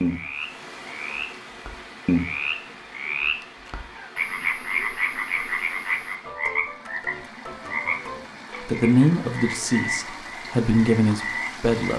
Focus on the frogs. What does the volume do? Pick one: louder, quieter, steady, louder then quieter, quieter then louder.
quieter.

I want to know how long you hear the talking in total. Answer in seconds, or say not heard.
3 s.